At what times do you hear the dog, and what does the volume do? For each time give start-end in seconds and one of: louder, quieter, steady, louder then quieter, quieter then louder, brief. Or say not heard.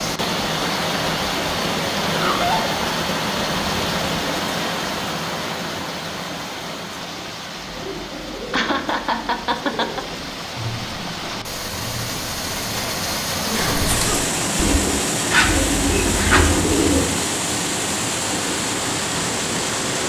not heard.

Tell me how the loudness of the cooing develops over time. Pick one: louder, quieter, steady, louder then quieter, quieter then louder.
louder.